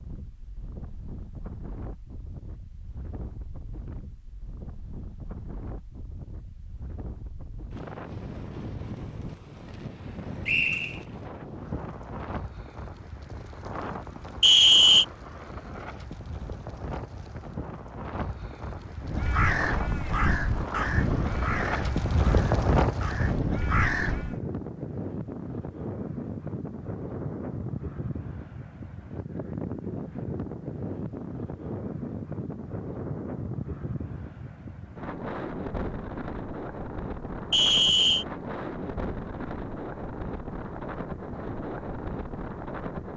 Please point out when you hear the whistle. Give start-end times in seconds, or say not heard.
10.4-11.0, 14.4-15.1, 37.5-38.2.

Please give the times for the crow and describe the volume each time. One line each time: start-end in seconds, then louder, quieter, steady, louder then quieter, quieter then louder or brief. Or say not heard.
19.0-24.4 quieter then louder.